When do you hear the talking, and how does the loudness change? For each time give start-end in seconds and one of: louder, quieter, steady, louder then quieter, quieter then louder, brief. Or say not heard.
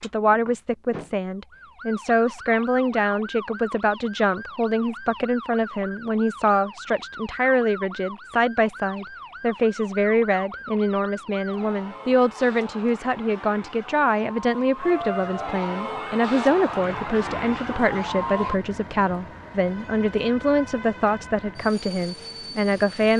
0.0-23.1 steady.